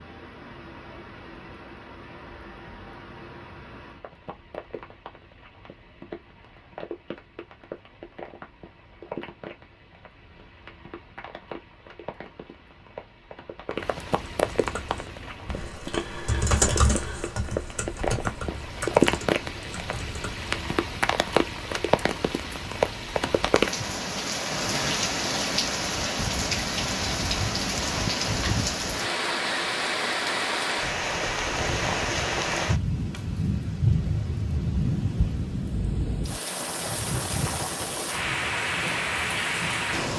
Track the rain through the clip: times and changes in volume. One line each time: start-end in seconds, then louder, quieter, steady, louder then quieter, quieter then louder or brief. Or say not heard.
0.0-40.1 louder.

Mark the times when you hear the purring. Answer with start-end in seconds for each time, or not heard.
not heard.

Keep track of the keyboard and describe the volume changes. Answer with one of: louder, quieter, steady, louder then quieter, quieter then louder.
louder then quieter.